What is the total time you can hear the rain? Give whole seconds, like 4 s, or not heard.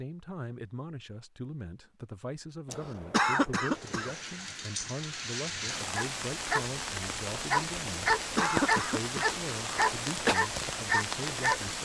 8 s.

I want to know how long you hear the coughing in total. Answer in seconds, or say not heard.
4 s.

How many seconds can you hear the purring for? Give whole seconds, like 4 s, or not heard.
not heard.